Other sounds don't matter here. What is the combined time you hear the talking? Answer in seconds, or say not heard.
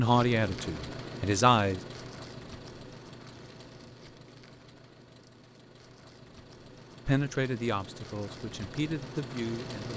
5 s.